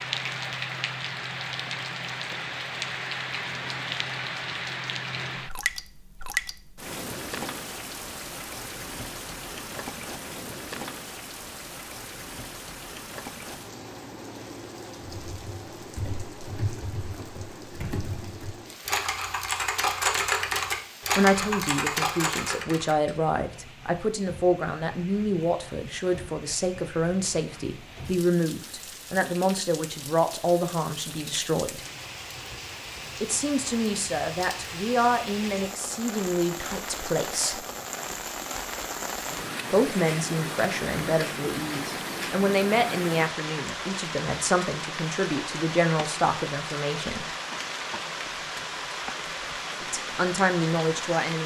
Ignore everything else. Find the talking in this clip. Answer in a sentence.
The talking can be heard from 21.1 to 31.9 s, from 33.2 to 37.6 s, from 39.7 to 47.2 s and from 49.8 to 51.4 s.